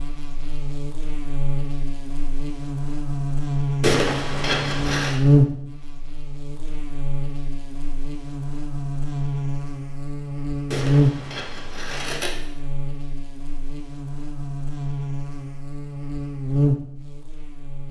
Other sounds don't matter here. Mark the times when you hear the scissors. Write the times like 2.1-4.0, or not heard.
3.8-5.2, 10.7-12.3.